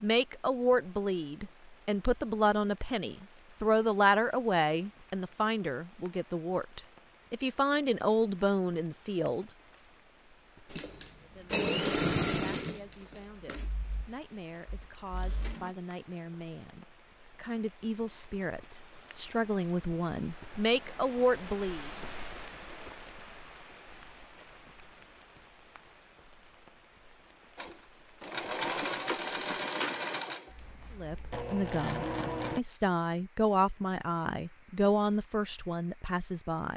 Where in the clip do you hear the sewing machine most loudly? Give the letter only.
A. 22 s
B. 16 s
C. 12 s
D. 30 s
C.